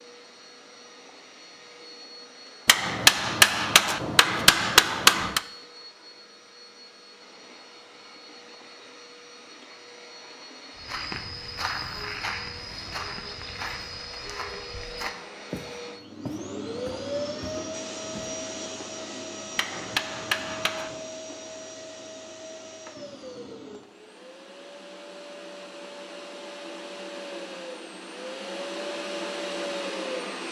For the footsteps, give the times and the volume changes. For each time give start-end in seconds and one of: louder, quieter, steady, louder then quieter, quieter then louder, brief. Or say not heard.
10.8-18.4 quieter.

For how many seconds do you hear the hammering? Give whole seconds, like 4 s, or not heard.
4 s.